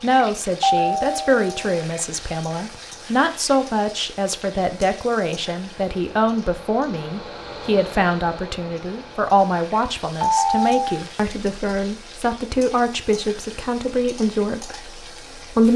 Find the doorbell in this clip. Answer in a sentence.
You can hear the doorbell from 0.6 to 1.9 s and from 10.2 to 11.0 s.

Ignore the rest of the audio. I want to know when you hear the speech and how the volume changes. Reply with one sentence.
The speech can be heard from 0.0 to 15.7 s, at a steady volume.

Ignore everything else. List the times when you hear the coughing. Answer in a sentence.
The coughing can't be heard in this clip.